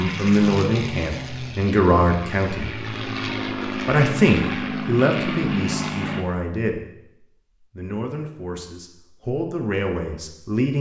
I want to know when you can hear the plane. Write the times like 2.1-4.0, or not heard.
0.0-6.2.